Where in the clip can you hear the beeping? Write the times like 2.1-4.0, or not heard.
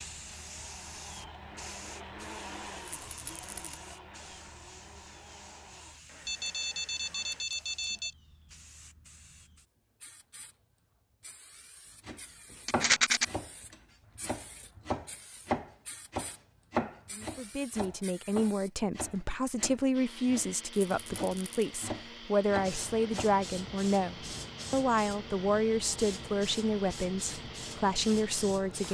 6.2-8.2.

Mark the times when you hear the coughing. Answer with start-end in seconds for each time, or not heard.
not heard.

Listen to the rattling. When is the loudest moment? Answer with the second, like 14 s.
13 s.